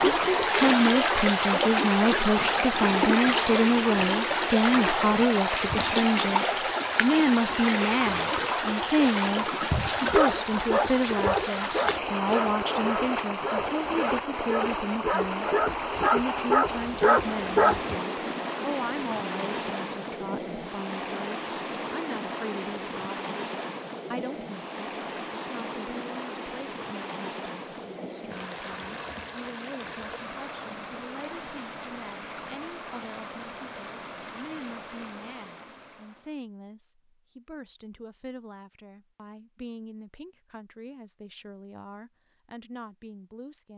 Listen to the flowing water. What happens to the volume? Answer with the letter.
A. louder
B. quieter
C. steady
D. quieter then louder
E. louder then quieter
B.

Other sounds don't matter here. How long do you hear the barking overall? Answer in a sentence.
The barking can be heard for 8 seconds in total.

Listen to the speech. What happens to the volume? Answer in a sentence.
The loudness of the speech goes down.